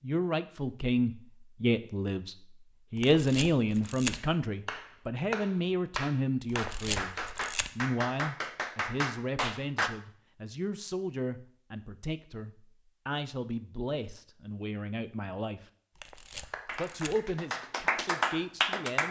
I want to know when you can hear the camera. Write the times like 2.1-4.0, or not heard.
3.0-4.2, 6.5-7.7, 15.9-17.1.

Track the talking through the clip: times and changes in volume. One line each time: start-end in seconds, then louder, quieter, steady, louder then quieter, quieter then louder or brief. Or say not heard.
0.0-15.7 quieter
16.8-19.0 brief.